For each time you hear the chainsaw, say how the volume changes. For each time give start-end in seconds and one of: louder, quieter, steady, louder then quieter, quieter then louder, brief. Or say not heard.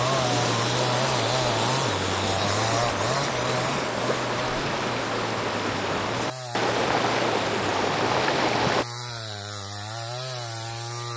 0.0-11.1 quieter.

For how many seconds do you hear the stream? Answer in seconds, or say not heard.
9 s.